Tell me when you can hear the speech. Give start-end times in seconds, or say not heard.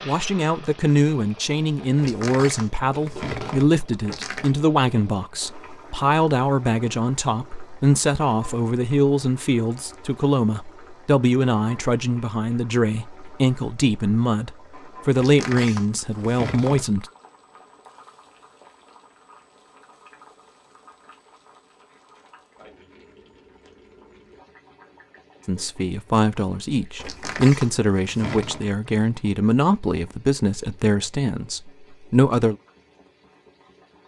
0.1-17.1, 25.4-32.5.